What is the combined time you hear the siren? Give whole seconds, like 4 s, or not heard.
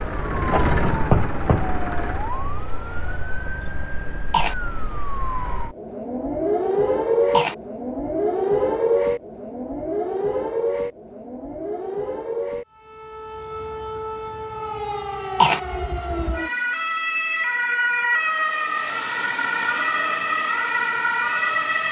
22 s.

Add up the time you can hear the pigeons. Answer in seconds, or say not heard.
not heard.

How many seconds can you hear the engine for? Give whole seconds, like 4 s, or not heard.
2 s.